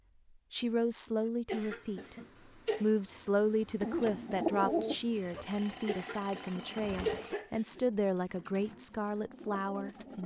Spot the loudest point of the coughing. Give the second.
7 s.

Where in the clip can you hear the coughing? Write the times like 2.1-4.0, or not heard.
1.4-2.9, 5.8-7.8.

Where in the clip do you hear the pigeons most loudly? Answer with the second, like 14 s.
5 s.